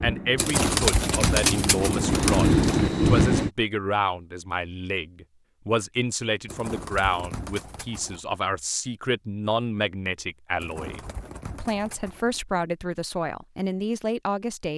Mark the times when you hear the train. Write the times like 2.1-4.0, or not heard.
0.0-3.5.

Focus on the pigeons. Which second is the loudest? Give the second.
1 s.